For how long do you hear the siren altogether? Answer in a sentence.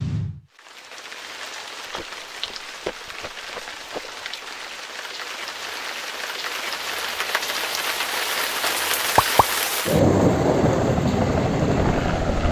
You can't hear the siren here.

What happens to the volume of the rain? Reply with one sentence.
The volume of the rain goes up.